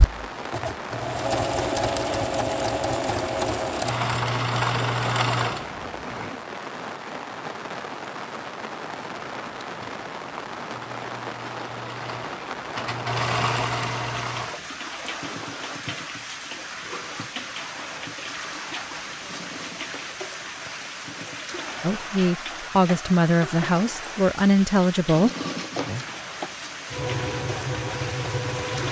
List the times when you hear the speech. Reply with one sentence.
The speech can be heard from 21.8 to 25.3 s.